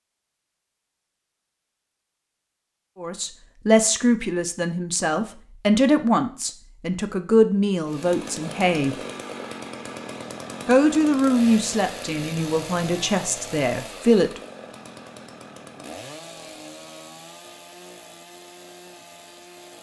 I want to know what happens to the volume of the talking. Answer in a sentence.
The volume of the talking stays about the same.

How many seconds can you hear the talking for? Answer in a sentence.
You can hear the talking for 10 seconds altogether.